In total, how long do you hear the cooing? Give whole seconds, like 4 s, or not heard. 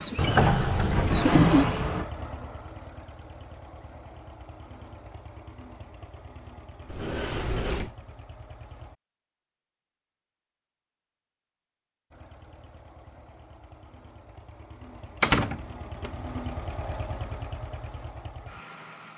2 s.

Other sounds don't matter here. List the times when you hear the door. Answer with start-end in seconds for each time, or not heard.
0.1-2.0, 6.8-8.0, 15.2-16.1.